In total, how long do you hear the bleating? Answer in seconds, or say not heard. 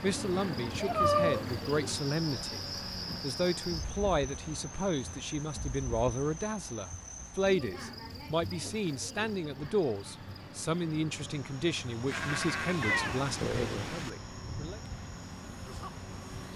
2 s.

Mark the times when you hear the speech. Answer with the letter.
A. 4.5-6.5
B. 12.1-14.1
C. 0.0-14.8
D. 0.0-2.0
C.